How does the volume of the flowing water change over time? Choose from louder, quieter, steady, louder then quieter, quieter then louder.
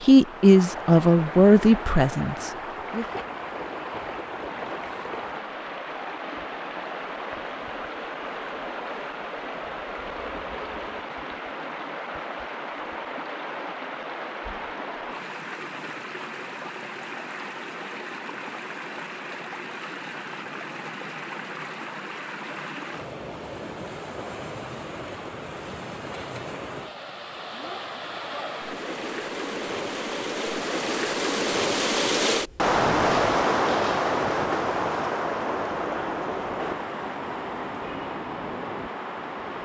louder.